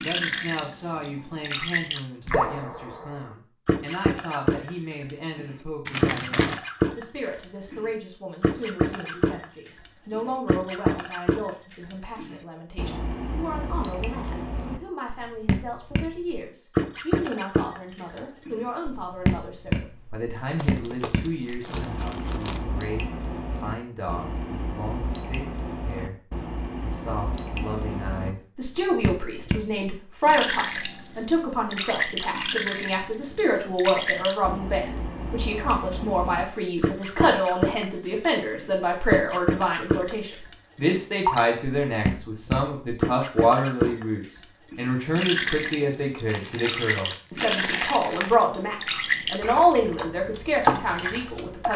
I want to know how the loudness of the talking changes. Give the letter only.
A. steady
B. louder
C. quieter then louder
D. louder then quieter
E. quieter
B.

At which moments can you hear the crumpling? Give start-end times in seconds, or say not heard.
5.8-6.6, 20.6-22.6, 46.2-48.4.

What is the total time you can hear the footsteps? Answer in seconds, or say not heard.
not heard.